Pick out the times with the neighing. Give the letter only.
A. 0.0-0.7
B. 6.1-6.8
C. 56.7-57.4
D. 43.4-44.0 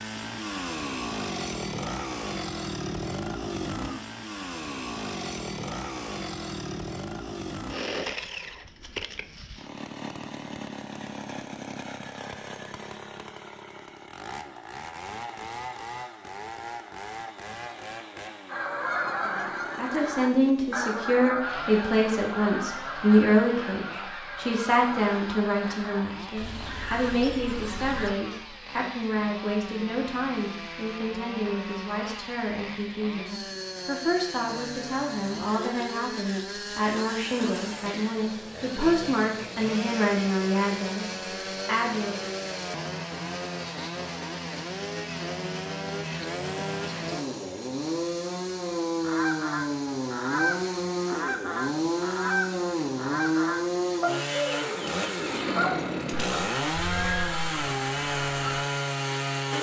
C.